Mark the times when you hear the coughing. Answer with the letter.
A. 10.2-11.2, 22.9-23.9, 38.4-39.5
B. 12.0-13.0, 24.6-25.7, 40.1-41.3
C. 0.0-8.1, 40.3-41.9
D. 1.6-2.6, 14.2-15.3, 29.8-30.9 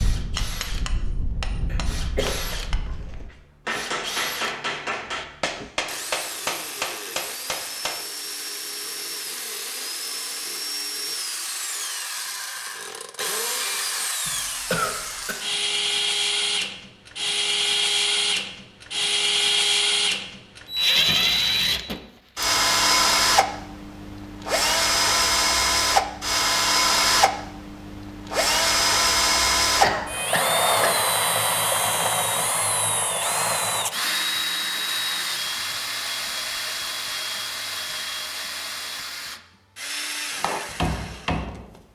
D.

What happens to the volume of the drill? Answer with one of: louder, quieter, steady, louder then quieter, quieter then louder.
louder then quieter.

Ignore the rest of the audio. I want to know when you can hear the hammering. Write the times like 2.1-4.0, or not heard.
0.0-8.1, 40.3-41.9.